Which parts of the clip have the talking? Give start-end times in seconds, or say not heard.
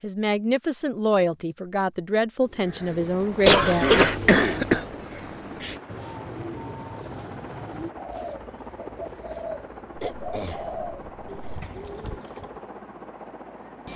0.0-3.9.